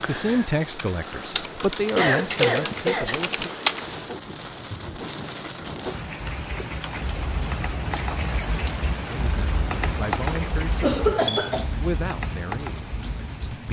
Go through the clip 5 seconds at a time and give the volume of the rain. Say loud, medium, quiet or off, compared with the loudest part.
medium, loud, loud.